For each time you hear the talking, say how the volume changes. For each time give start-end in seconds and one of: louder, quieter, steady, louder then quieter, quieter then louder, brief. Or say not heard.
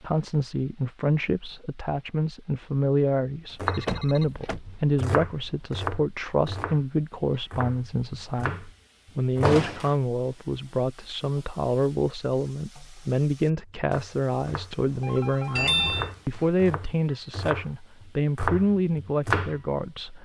0.0-20.2 steady.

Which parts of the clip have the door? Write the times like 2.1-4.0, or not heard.
3.9-4.6, 9.4-9.9, 15.6-16.1.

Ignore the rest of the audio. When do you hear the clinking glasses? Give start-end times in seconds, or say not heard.
not heard.